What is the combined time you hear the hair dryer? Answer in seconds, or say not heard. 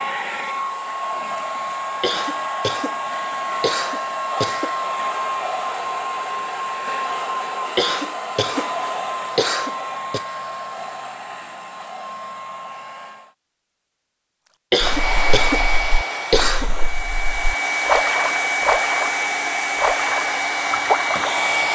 20 s.